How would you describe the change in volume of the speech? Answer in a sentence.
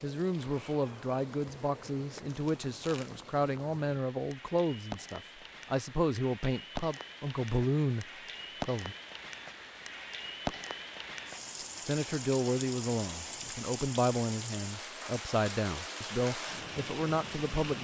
The volume of the speech stays about the same.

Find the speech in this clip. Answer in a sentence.
The speech can be heard from 0.0 to 8.9 s and from 11.8 to 17.7 s.